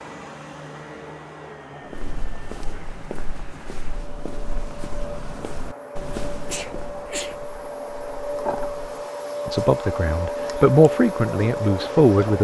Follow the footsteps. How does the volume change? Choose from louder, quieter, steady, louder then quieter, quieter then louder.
quieter.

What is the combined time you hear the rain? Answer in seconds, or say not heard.
not heard.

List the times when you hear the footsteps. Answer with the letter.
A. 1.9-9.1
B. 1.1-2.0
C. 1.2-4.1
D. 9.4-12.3
A.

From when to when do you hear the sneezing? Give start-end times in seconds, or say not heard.
6.5-7.4.